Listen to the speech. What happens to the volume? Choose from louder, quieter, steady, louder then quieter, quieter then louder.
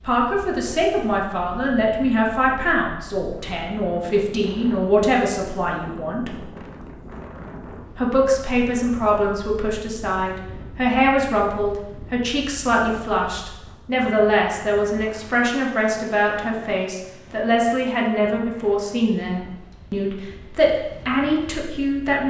steady.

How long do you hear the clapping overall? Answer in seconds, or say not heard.
not heard.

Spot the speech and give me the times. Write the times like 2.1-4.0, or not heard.
0.0-6.4, 8.0-22.2.